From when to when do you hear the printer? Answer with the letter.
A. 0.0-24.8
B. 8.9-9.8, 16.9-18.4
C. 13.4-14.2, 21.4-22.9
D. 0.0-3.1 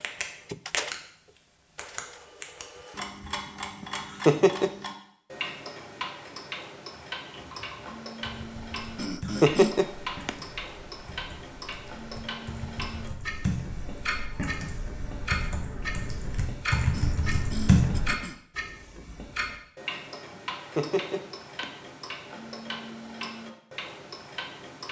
D.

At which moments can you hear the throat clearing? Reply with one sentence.
The throat clearing can be heard from 8.9 to 9.8 s and from 16.9 to 18.4 s.